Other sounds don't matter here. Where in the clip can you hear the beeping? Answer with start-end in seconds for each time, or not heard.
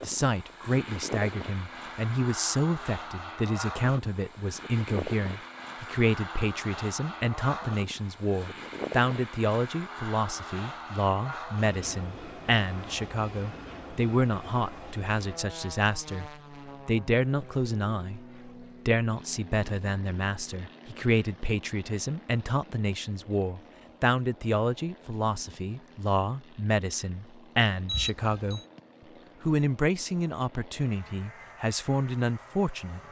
27.9-28.6.